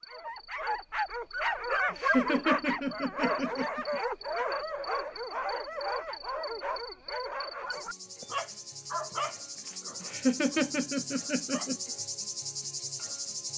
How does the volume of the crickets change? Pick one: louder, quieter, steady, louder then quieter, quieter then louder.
louder.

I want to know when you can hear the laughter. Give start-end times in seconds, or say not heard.
1.9-4.5, 10.0-11.9.